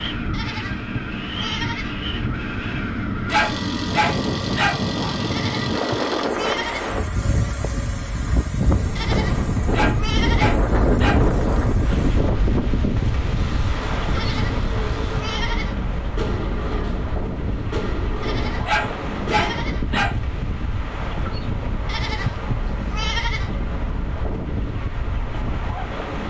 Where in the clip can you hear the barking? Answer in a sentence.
You can hear the barking from 3.3 to 4.8 s, from 9.7 to 11.2 s and from 18.6 to 20.1 s.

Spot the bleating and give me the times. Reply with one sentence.
The bleating can be heard from 0.3 to 2.0 s, from 5.3 to 7.0 s, from 8.9 to 10.6 s, from 14.1 to 15.8 s, from 18.2 to 19.9 s and from 21.9 to 23.6 s.